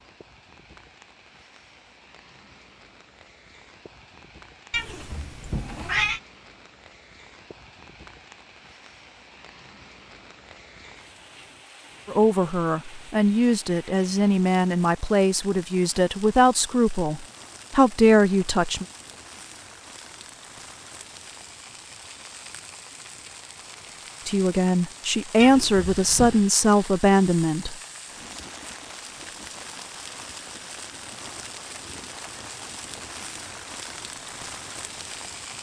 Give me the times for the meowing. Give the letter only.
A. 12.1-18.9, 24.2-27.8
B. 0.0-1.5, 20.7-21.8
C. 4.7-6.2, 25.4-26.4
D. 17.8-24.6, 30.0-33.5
C.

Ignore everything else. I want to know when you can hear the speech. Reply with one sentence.
The speech can be heard from 12.1 to 18.9 s and from 24.2 to 27.8 s.